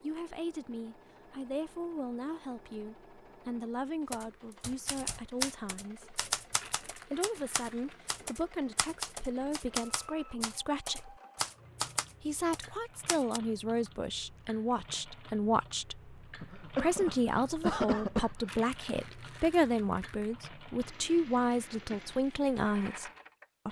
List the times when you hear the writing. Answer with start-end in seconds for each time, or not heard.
not heard.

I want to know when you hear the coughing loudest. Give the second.
18 s.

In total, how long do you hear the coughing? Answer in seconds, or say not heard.
2 s.